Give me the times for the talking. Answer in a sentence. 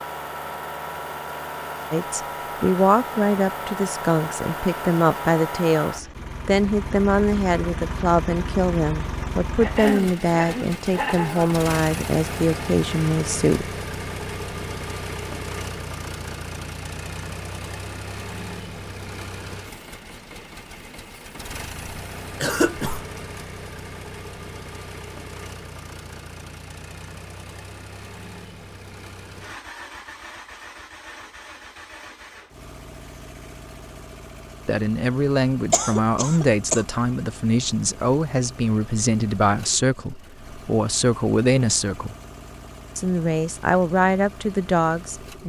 The talking can be heard from 1.9 to 13.7 s, from 34.6 to 42.1 s and from 43.0 to 45.4 s.